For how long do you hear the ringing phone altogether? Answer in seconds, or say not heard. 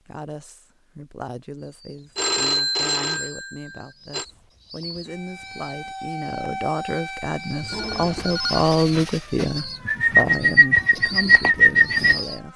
3 s.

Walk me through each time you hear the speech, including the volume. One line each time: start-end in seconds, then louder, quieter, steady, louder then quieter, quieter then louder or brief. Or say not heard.
0.1-12.5 louder then quieter.